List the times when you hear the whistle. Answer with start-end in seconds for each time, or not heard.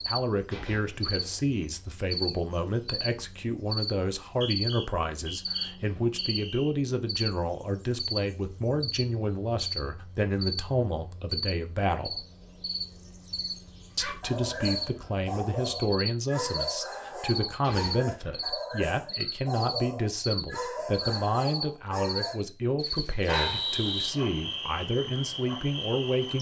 4.2-6.8, 23.3-24.1.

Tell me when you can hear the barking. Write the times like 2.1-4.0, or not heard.
14.0-23.8.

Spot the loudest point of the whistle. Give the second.
24 s.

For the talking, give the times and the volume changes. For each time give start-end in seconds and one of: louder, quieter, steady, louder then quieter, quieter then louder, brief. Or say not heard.
0.1-12.2 steady
13.9-26.3 steady.